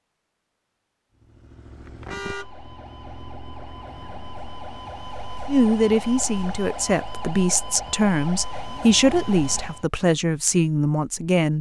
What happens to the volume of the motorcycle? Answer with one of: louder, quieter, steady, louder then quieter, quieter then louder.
quieter.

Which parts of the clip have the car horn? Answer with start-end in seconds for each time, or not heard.
2.0-2.5.